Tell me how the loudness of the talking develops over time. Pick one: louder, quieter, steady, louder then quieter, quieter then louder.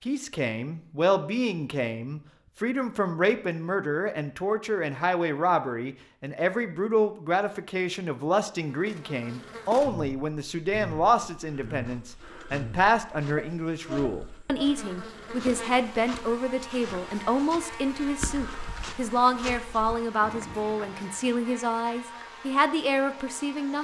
steady.